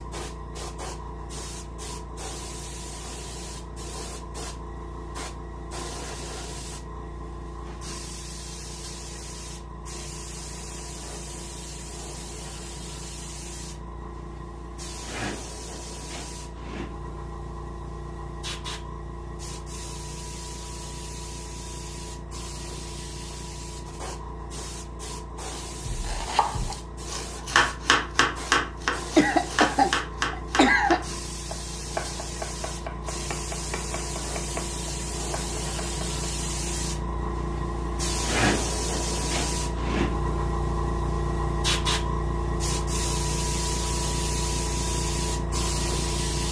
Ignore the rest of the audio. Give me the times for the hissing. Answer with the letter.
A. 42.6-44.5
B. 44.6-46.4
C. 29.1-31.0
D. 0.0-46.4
D.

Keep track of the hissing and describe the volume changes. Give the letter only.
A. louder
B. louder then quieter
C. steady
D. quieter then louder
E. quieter
A.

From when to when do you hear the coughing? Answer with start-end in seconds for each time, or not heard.
29.1-31.0.